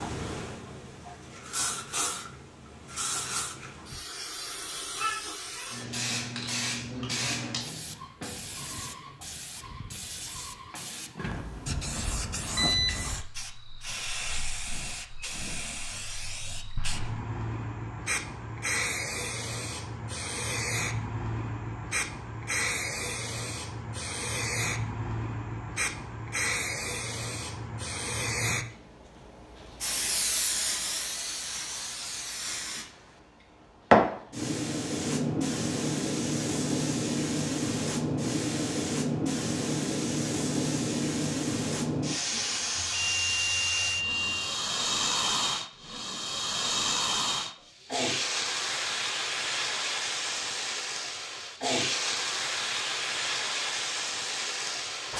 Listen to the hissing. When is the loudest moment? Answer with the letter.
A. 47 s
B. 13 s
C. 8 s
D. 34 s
D.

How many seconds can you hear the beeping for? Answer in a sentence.
You can hear the beeping for 4 seconds altogether.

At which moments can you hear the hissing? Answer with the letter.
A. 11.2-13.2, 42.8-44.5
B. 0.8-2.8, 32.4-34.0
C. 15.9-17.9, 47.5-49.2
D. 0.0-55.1
D.